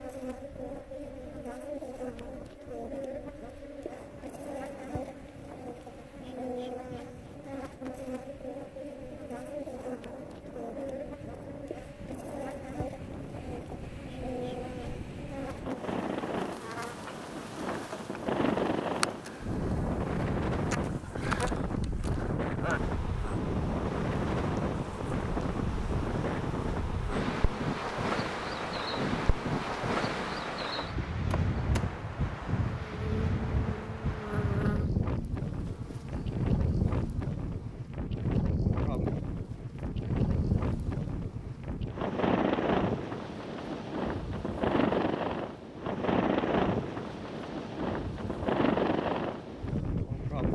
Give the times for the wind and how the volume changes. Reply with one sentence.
You can hear the wind from 0.0 to 50.5 s, getting louder.